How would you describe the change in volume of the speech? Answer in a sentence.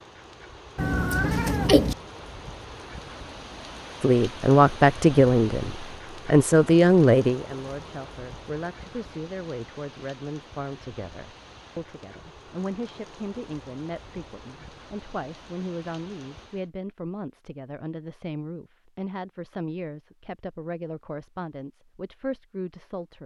The volume of the speech goes down.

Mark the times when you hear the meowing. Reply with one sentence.
The meowing can be heard from 0.8 to 1.9 s.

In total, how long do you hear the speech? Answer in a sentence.
The speech can be heard for 19 seconds in total.